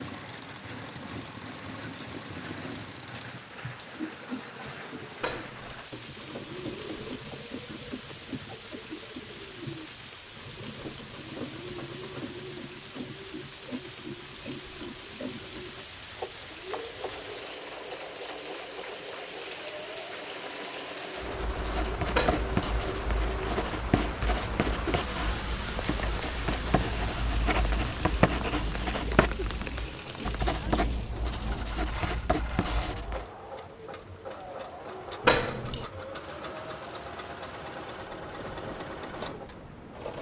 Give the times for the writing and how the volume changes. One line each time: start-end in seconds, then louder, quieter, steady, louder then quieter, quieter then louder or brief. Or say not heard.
21.2-33.2 steady.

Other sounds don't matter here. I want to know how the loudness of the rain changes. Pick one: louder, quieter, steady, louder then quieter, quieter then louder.
louder then quieter.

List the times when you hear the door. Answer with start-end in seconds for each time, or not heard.
5.2-5.8, 22.1-22.8, 35.2-35.9.